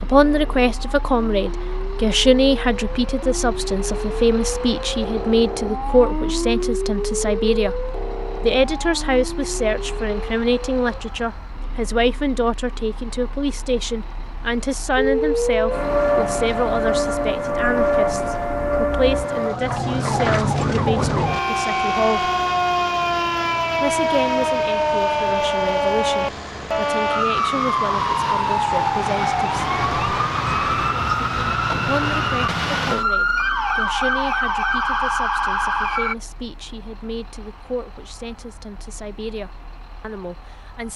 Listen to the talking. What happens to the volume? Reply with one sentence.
The loudness of the talking goes down.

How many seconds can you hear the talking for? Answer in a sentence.
The talking can be heard for 37 seconds in total.